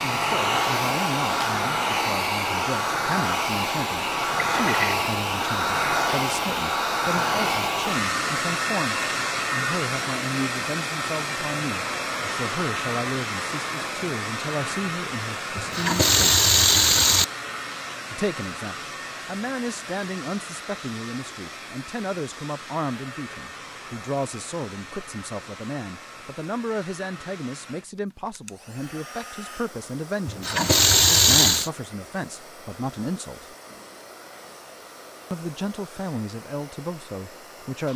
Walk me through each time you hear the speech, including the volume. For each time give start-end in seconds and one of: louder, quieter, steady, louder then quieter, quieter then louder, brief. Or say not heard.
0.0-16.4 steady
18.1-33.5 steady
35.3-37.9 brief.